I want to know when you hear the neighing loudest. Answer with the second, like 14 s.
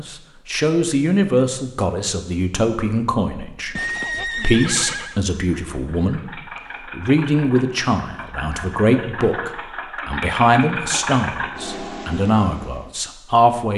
4 s.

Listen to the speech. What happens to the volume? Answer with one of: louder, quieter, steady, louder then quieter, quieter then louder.
steady.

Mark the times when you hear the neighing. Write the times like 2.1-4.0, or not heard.
3.8-5.2.